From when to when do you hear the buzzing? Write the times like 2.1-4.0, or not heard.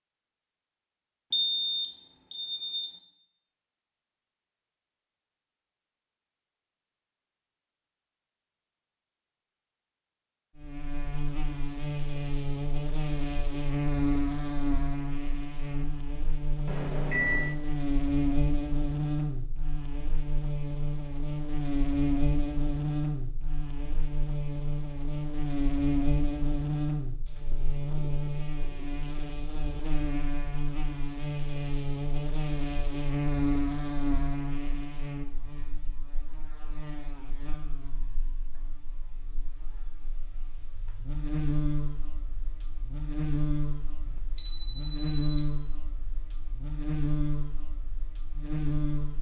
10.6-49.1.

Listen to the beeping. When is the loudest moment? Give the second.
45 s.